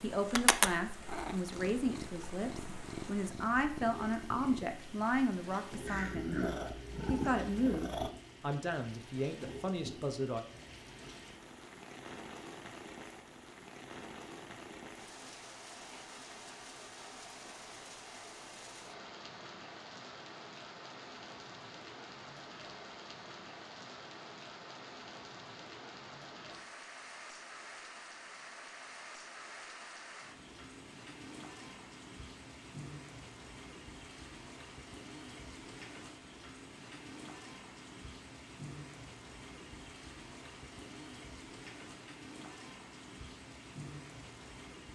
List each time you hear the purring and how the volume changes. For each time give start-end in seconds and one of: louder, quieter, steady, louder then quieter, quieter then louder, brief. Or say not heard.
0.1-8.1 quieter then louder.